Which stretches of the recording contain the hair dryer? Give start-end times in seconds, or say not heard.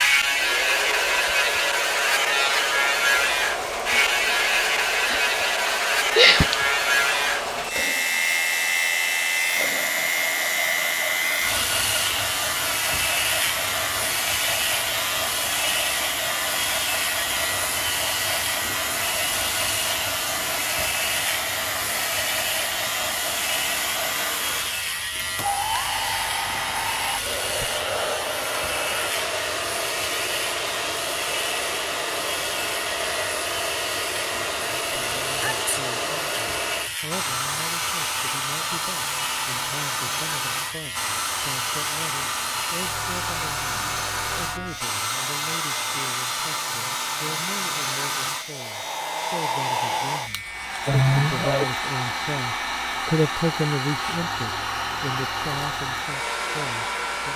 0.0-57.3.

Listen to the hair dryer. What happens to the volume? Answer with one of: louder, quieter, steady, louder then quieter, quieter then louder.
steady.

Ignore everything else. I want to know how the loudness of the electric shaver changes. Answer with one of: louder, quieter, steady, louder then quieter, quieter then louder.
quieter.